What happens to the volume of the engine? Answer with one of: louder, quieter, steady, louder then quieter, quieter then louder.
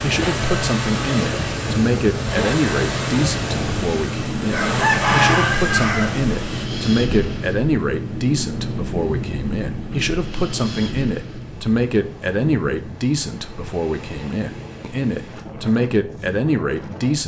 steady.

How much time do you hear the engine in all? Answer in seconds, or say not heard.
7 s.